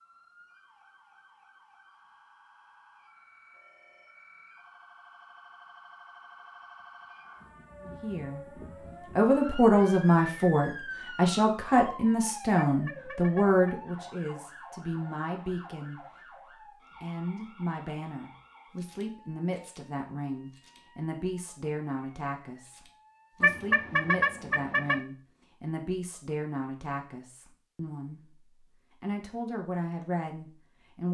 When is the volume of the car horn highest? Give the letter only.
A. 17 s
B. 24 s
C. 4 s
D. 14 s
B.